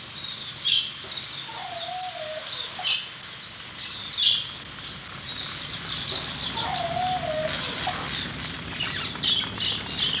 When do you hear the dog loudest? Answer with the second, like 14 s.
7 s.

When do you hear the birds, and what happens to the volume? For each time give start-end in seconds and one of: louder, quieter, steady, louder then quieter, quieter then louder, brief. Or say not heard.
0.0-10.1 steady.